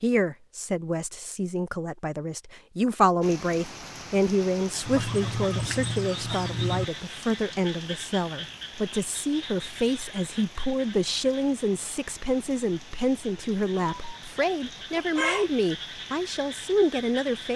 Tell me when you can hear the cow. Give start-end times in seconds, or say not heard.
not heard.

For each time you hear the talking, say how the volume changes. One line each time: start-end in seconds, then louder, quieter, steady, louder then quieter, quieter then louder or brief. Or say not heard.
0.0-17.5 steady.